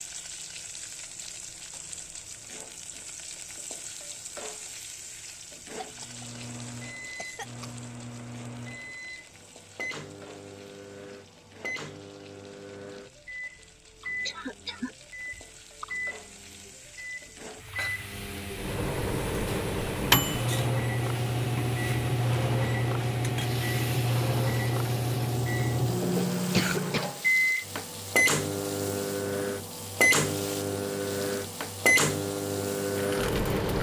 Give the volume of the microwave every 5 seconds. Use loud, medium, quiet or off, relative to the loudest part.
off, quiet, quiet, medium, loud, loud, loud.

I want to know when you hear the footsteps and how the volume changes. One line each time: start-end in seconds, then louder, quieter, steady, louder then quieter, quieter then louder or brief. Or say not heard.
not heard.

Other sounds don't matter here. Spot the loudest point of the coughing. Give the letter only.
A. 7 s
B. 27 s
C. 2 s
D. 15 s
B.